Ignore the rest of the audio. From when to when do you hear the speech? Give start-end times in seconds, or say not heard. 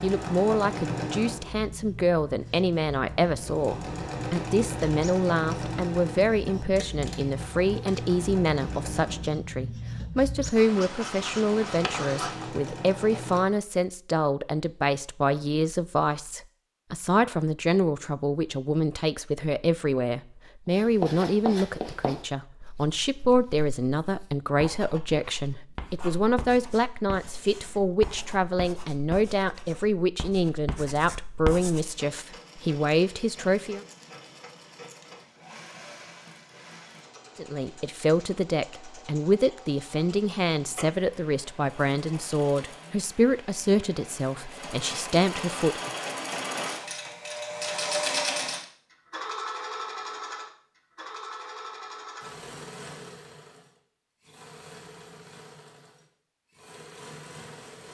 0.0-33.8, 37.4-45.9.